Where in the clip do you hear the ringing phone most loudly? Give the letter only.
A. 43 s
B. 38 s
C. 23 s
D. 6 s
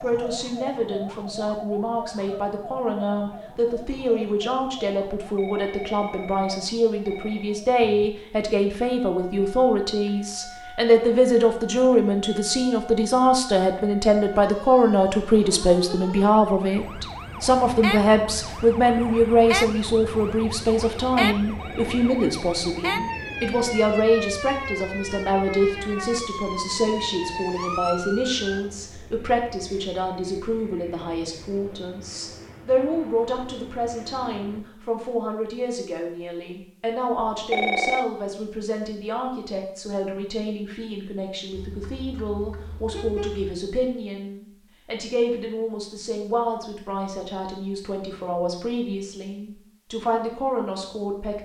B.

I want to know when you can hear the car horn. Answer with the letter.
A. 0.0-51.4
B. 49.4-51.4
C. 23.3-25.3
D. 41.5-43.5
D.